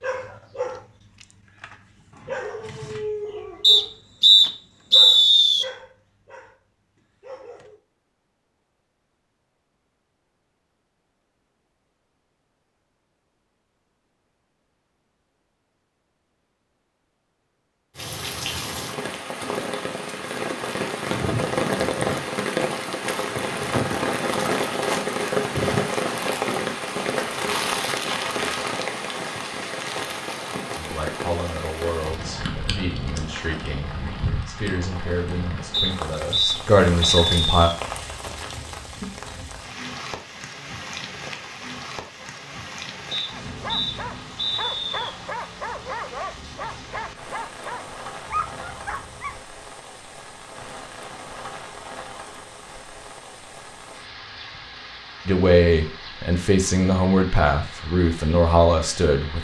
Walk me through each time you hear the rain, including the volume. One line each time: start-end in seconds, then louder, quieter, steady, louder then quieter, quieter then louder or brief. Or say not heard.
17.9-59.3 quieter.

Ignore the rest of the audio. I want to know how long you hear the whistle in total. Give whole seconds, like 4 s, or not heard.
6 s.